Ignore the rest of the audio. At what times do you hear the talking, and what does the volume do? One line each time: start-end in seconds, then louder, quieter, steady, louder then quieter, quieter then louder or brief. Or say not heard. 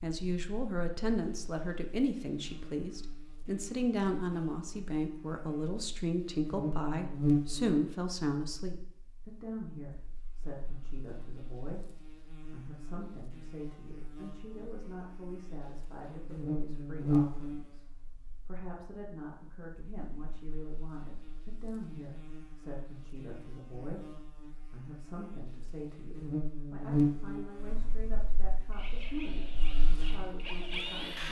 0.0-31.2 quieter.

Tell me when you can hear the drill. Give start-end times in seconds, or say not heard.
28.6-31.2.